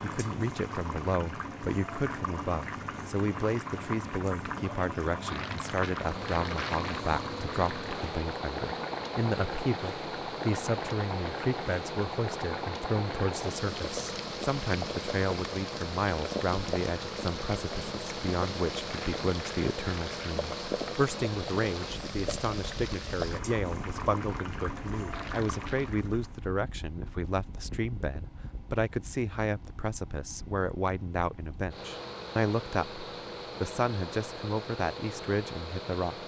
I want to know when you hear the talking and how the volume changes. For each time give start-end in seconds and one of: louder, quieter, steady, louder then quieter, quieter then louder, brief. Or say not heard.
0.0-36.2 steady.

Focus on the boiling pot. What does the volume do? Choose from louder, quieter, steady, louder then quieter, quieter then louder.
steady.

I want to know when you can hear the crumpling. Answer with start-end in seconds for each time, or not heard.
5.2-7.0, 18.9-20.4, 25.1-25.9.